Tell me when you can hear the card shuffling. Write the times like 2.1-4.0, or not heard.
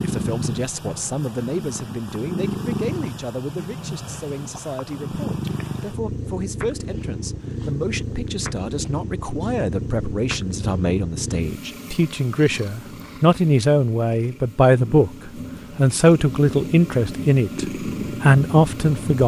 not heard.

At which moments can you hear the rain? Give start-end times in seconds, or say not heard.
not heard.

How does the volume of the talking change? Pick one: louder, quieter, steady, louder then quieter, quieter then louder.
louder.